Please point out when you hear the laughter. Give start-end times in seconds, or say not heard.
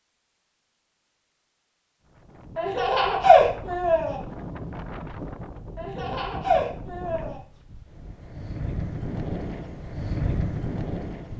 2.5-4.2, 5.8-7.3.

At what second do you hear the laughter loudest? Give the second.
3 s.